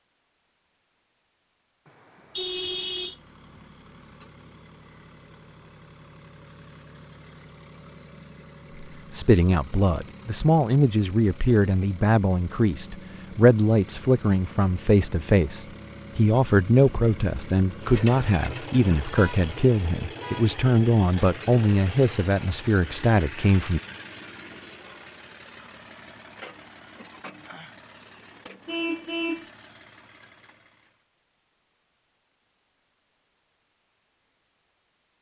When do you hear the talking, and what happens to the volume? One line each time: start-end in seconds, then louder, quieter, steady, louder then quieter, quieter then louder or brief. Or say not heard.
8.8-23.8 steady.